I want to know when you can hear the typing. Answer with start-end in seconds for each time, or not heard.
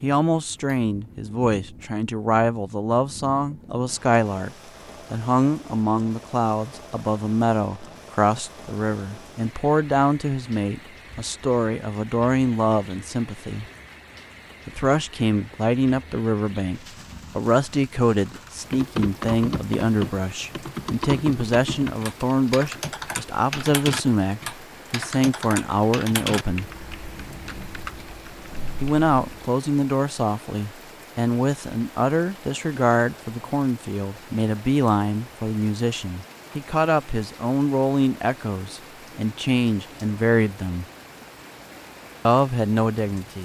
18.7-29.4.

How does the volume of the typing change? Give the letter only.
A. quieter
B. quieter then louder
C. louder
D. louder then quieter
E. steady
A.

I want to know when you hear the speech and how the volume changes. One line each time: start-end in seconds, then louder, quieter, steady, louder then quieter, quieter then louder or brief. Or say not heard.
0.0-13.7 steady
14.7-26.6 steady
28.8-40.9 steady
42.2-43.4 brief.